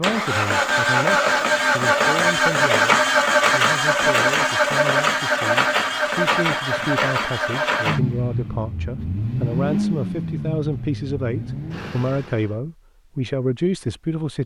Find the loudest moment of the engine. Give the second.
3 s.